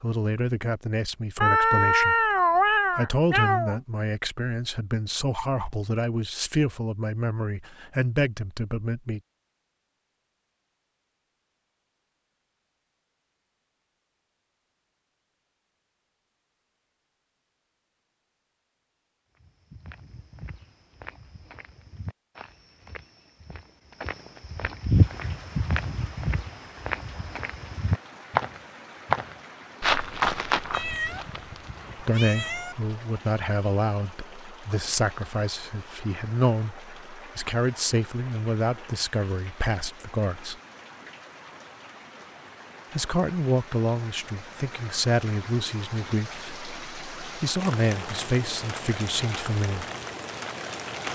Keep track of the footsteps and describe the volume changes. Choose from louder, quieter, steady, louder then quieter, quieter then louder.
louder.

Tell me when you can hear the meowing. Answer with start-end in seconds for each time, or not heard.
1.4-3.8, 30.7-32.8.